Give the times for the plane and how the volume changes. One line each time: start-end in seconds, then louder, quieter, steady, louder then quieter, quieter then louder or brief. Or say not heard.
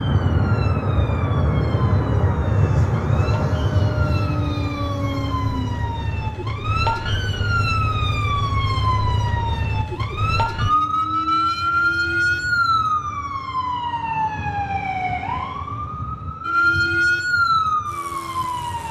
0.0-18.8 quieter.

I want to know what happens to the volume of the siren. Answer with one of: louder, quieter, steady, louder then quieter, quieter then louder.
louder.